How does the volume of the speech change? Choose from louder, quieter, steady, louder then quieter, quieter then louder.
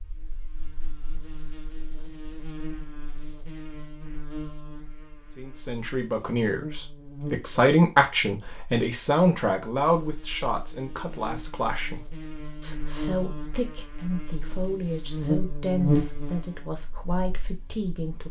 quieter.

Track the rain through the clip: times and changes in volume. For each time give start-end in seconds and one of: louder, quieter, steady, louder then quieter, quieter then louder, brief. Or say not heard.
not heard.